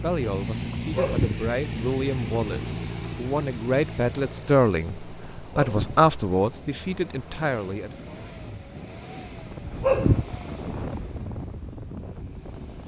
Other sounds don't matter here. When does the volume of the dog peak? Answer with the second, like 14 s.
10 s.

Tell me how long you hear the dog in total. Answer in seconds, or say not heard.
2 s.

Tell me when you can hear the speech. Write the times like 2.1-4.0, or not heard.
0.0-8.1.